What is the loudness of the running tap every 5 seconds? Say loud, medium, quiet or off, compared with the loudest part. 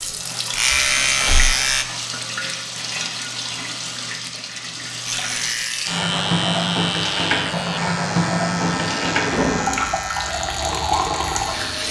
medium, loud, loud.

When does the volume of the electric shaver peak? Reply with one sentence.
The volume of the electric shaver peaks at 1 second.